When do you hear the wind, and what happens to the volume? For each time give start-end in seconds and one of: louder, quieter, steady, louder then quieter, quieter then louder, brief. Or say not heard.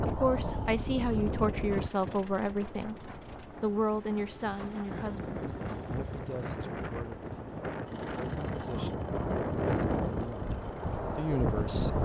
0.0-12.0 quieter then louder.